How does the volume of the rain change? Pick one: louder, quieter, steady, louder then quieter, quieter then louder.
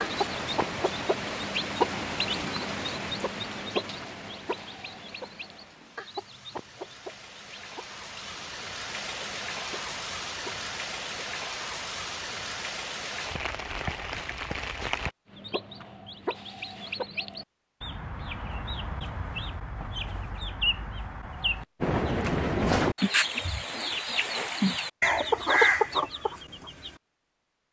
quieter then louder.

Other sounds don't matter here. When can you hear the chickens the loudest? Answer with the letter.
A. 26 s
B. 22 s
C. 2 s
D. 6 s
A.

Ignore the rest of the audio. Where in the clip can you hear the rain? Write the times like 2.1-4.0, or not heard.
0.0-15.2.